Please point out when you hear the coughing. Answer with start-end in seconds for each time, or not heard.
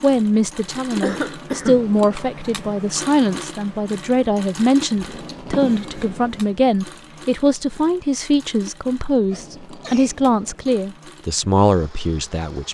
1.0-1.9, 5.2-6.2, 9.3-10.2.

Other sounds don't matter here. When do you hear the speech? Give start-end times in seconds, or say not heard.
0.0-12.6.